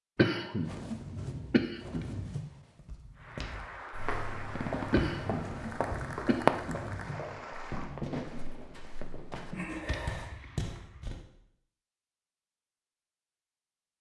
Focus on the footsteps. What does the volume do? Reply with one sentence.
The loudness of the footsteps goes down, then up.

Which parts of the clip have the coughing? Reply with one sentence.
You can hear the coughing from 0.1 to 2.5 s, from 4.9 to 7.2 s and from 9.5 to 10.3 s.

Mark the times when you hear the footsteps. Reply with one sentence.
The footsteps can be heard from 2.8 to 11.2 s.